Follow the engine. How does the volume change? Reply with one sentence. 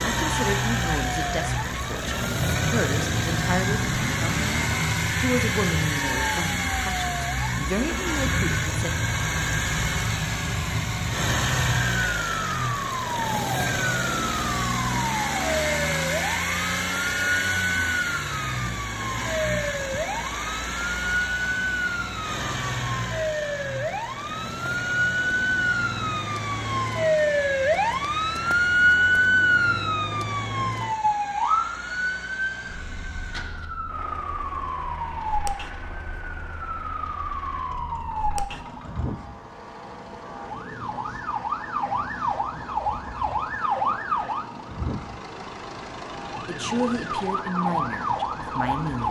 The volume of the engine goes down.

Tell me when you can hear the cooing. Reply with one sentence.
The cooing can't be heard in this clip.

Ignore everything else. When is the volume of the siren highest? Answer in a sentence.
The loudest moment of the siren is at 29 seconds.